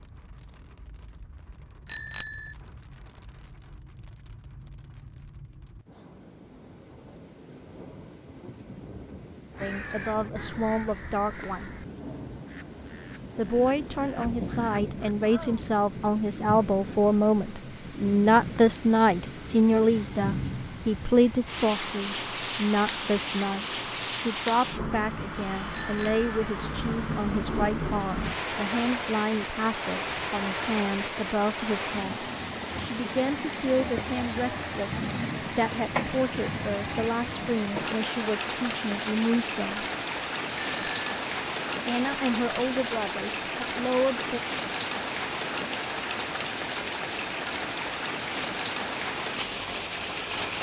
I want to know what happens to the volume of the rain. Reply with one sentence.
The loudness of the rain goes up.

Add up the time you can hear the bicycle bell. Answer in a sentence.
The bicycle bell can be heard for 2 seconds in total.